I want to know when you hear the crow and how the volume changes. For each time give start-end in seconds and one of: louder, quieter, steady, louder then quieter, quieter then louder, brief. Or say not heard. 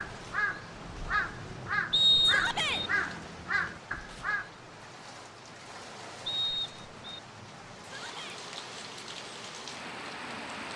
0.0-4.5 steady.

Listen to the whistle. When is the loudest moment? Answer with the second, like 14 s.
2 s.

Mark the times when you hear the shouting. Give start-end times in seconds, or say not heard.
2.2-2.9, 7.8-8.4.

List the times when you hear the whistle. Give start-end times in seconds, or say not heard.
1.9-2.9, 6.2-7.2.